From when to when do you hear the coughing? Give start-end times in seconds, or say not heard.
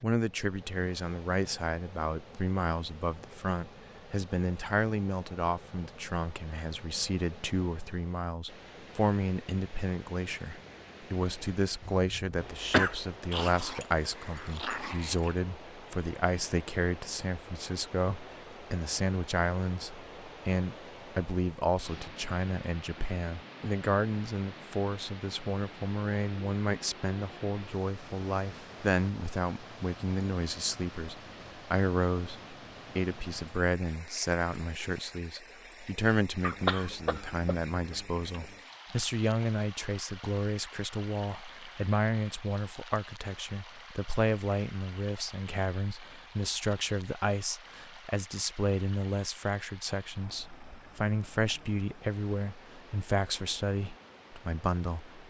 11.8-13.0, 36.4-38.5.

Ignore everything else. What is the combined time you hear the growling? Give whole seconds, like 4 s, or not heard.
2 s.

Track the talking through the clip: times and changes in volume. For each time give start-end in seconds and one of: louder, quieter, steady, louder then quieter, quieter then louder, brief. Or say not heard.
0.0-55.2 steady.